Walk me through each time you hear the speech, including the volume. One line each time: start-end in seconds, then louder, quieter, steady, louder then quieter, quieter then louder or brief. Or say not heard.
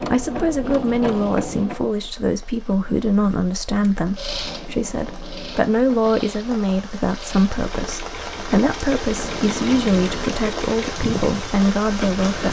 0.0-12.4 steady.